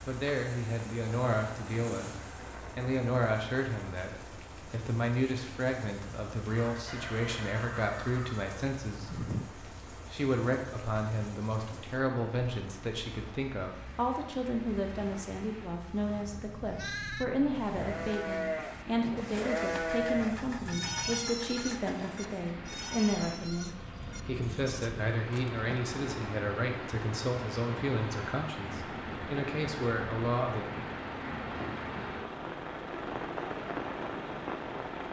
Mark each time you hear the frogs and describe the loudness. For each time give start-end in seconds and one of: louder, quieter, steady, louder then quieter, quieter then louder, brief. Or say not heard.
not heard.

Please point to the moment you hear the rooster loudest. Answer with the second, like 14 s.
9 s.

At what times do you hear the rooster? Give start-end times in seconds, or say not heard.
6.5-9.5.